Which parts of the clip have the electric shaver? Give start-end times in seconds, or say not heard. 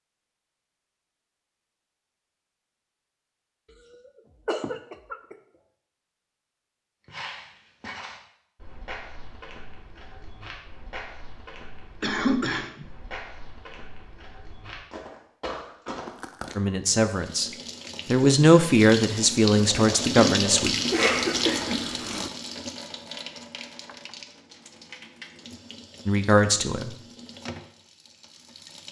not heard.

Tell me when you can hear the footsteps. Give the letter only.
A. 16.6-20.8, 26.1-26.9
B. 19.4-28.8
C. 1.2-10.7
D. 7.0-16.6
D.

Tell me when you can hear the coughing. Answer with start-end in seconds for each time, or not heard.
3.9-5.3, 12.0-12.8, 20.9-22.3.